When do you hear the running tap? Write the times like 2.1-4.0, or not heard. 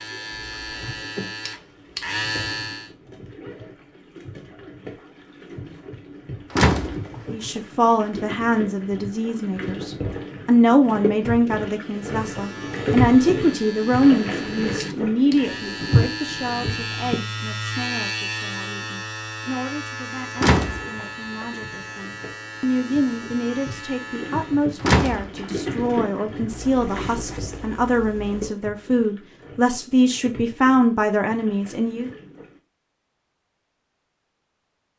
0.0-17.2, 20.1-32.6.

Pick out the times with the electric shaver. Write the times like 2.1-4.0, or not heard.
0.0-2.9, 11.8-24.7.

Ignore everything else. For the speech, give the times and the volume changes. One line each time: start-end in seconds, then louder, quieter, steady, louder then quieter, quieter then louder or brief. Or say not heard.
7.3-32.1 quieter then louder.